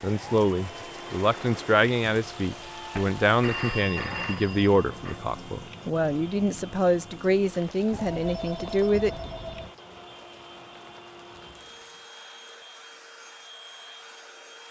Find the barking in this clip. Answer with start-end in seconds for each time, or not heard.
not heard.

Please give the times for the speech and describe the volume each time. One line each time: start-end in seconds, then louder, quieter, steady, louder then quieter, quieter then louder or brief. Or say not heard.
0.0-9.1 steady.